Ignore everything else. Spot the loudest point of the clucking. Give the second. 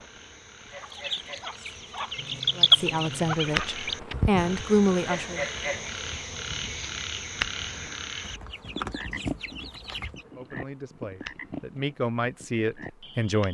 3 s.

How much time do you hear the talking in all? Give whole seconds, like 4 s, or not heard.
6 s.